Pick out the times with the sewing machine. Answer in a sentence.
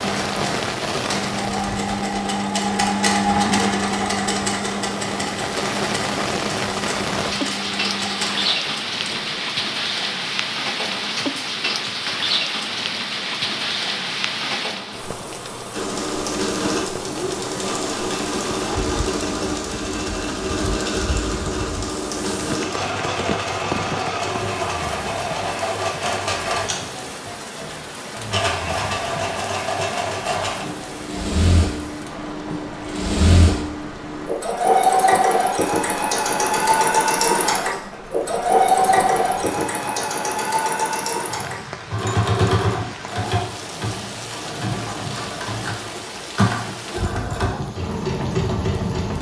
The sewing machine can be heard from 0.0 to 9.4 s and from 15.7 to 49.1 s.